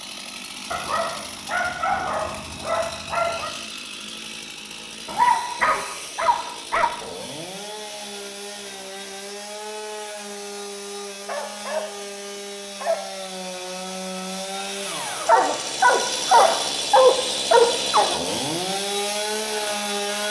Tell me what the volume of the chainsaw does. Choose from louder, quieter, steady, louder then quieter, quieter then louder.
louder.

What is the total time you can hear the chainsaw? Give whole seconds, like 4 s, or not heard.
20 s.